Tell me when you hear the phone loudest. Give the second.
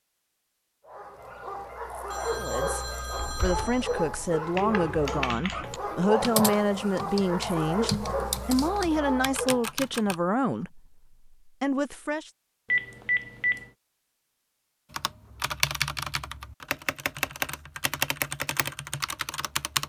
13 s.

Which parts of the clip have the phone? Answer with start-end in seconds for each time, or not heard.
2.1-4.0, 12.7-13.7.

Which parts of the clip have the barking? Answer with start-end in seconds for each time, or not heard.
0.8-9.7.